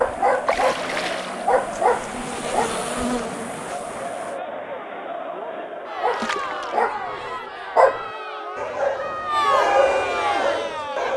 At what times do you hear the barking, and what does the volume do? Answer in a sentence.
The barking can be heard briefly from 0.0 to 2.7 s; and from 6.0 to 11.1 s, getting louder then quieter.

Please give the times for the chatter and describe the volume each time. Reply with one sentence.
You can hear the chatter from 0.0 to 11.1 s, getting louder.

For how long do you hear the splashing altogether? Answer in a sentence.
The splashing can be heard for 2 seconds in total.